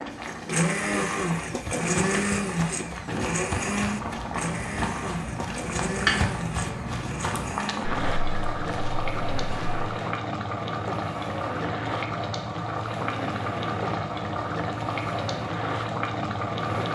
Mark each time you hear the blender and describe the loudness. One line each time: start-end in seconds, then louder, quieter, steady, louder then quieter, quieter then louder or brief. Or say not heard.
0.0-16.9 quieter.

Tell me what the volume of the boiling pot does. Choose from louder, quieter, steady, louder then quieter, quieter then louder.
louder.